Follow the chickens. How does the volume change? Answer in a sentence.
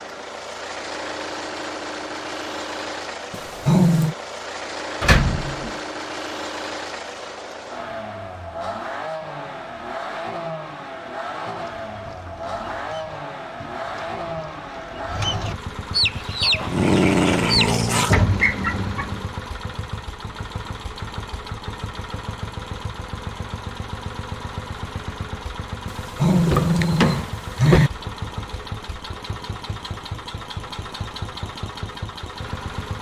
The loudness of the chickens goes up.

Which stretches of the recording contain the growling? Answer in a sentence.
The growling can be heard from 3.3 to 4.2 s, from 16.1 to 18.1 s and from 25.9 to 27.9 s.